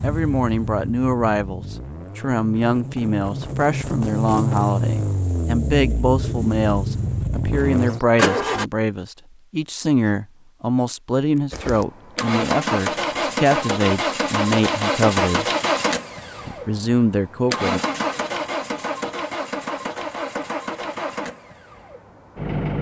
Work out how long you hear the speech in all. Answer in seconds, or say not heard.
17 s.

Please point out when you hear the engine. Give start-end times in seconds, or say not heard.
0.0-8.7, 11.5-22.7.